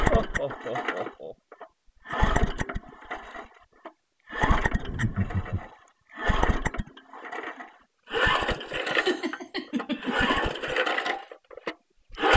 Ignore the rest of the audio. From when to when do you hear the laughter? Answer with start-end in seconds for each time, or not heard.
0.1-1.4, 4.8-5.7, 8.9-10.3.